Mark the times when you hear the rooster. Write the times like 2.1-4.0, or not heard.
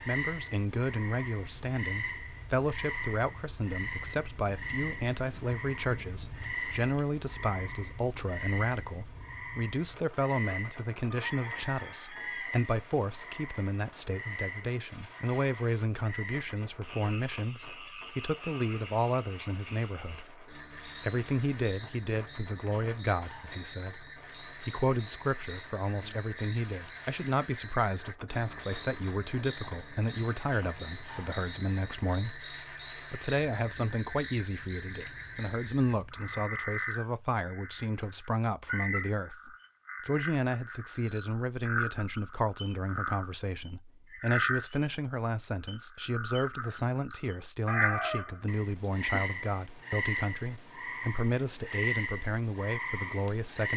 11.1-12.5, 47.6-49.2.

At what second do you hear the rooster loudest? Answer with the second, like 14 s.
48 s.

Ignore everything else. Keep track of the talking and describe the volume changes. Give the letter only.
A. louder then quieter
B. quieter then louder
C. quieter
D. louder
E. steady
E.